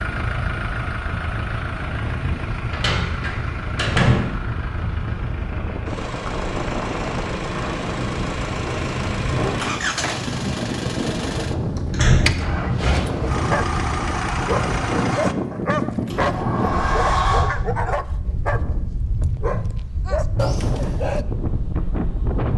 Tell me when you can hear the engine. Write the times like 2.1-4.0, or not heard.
0.0-15.3.